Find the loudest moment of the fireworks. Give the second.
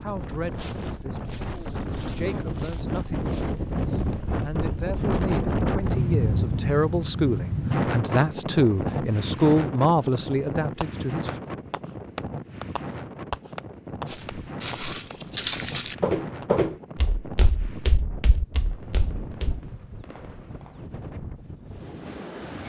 13 s.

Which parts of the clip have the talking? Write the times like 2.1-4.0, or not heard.
0.0-11.4.